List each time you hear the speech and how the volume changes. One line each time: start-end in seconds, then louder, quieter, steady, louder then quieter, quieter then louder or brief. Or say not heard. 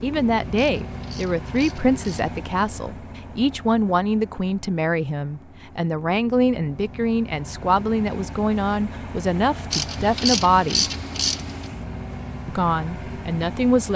0.0-10.8 steady
12.4-13.9 brief.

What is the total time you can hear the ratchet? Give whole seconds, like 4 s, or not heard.
4 s.